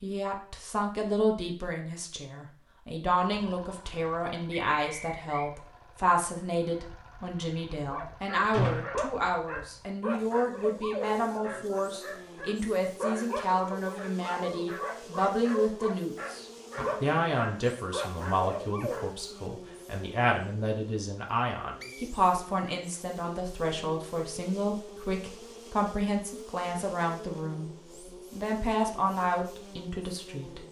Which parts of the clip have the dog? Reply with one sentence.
You can hear the dog from 7.8 to 19.1 s.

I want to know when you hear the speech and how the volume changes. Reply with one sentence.
You can hear the speech from 0.0 to 27.7 s, at a steady volume; and briefly from 28.3 to 30.6 s.